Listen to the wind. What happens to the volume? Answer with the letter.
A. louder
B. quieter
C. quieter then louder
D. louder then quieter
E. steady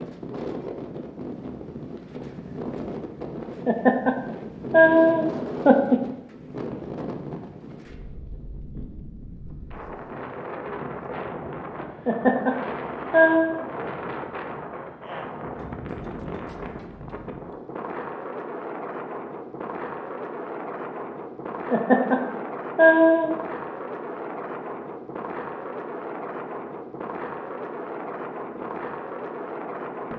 E.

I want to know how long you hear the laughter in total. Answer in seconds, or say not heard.
5 s.